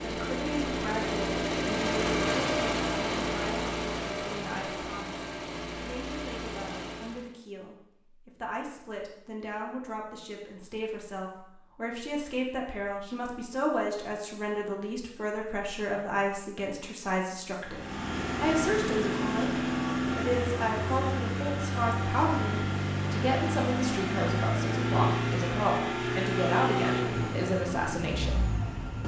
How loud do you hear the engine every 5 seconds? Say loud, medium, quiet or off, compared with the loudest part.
loud, medium, off, loud, loud, loud.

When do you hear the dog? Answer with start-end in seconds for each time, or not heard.
not heard.